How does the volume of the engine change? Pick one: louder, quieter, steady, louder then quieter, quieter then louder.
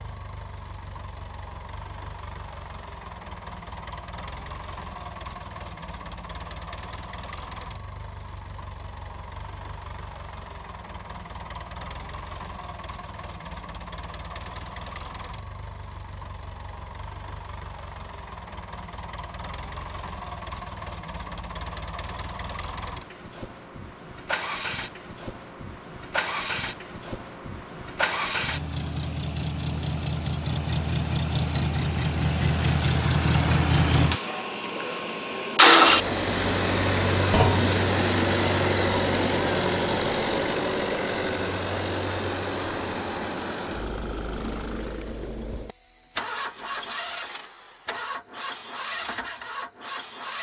louder then quieter.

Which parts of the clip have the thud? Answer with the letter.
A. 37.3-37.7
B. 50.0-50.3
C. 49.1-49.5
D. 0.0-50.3
A.